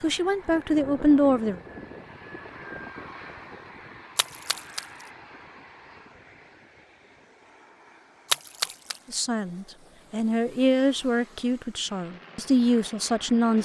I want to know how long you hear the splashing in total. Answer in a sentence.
The splashing can be heard for 2 seconds in total.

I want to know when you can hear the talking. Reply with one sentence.
You can hear the talking from 0.0 to 1.6 s and from 9.1 to 13.6 s.